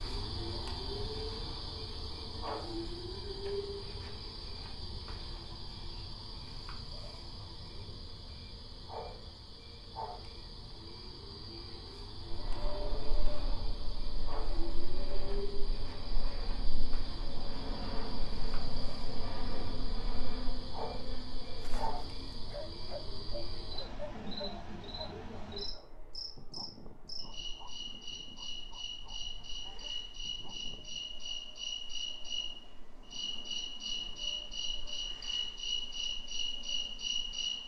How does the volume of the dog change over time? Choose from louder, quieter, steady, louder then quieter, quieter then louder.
quieter.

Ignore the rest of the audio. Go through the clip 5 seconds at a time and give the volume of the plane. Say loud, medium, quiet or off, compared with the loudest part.
off, off, loud, loud, loud, quiet, quiet, quiet.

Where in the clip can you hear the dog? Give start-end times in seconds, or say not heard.
21.6-31.1.